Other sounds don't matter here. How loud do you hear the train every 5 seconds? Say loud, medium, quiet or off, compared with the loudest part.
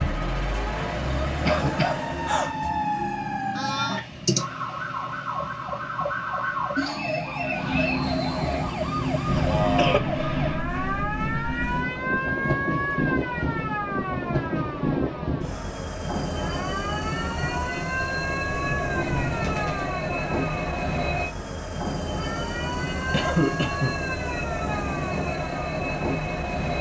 quiet, loud, loud, loud, loud, loud.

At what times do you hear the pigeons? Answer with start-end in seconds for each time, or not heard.
18.4-19.9.